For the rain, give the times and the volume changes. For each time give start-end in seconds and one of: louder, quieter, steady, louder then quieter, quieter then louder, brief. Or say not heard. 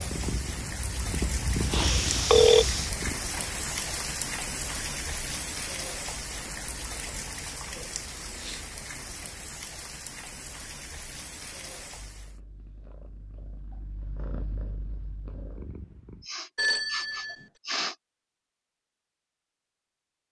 0.0-12.4 quieter.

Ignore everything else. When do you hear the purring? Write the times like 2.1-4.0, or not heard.
0.0-3.2, 11.9-16.2.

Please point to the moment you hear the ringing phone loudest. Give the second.
2 s.